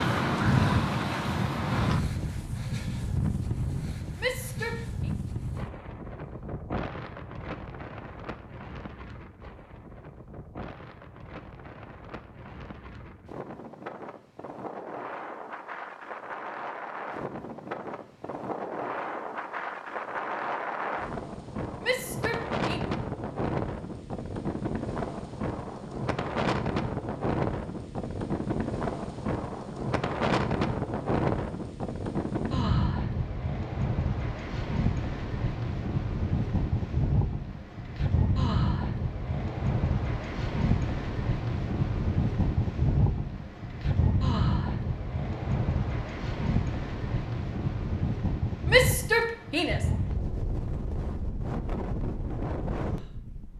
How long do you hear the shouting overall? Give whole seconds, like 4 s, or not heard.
3 s.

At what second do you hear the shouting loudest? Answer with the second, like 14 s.
49 s.